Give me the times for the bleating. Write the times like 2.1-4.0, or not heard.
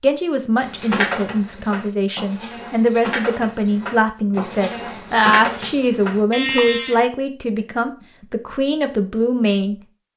0.6-7.0.